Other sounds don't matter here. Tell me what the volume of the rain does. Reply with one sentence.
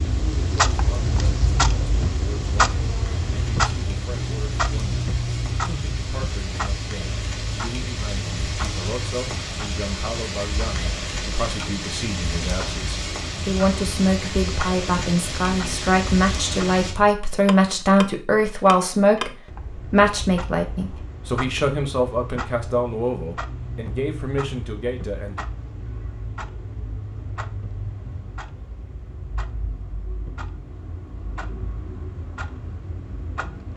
The volume of the rain goes up.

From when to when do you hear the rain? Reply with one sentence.
The rain can be heard from 0.0 to 16.9 s.